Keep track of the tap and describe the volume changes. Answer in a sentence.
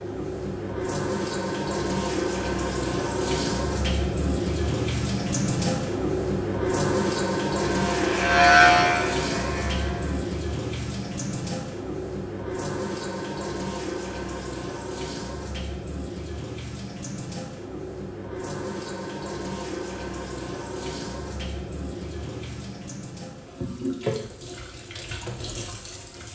The volume of the tap goes down.